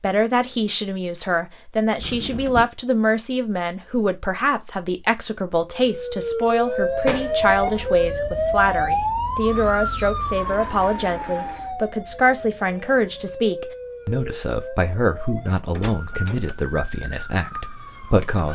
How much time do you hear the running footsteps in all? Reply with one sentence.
The running footsteps can't be heard in this clip.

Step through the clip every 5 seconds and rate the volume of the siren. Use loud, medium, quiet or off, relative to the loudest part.
off, loud, medium, quiet.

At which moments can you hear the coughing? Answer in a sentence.
The coughing can't be heard in this clip.